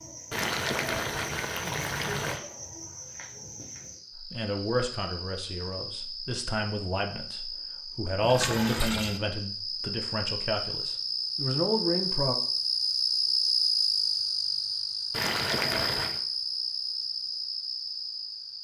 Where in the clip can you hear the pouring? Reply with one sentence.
You can hear the pouring from 0.3 to 2.4 s, from 8.2 to 9.2 s and from 15.1 to 16.2 s.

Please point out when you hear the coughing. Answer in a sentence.
The coughing can't be heard in this clip.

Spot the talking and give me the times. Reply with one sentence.
The talking can be heard from 4.2 to 12.3 s.